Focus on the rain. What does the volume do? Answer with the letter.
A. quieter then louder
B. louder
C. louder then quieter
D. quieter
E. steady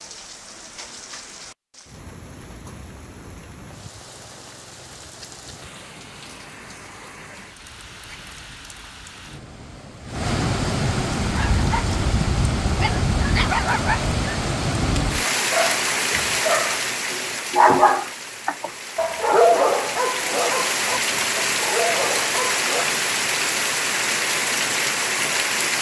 B.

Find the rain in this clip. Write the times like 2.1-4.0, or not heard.
0.0-25.7.